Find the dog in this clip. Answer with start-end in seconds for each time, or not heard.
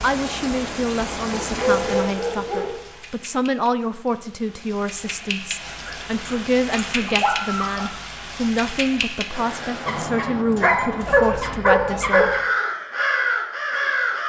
1.3-3.0, 5.8-8.0, 9.8-12.4.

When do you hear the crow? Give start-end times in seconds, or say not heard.
12.1-14.2.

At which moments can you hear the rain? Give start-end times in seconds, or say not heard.
0.0-10.3.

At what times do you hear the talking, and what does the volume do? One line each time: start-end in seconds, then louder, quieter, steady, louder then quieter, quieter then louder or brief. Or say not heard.
0.0-12.3 steady.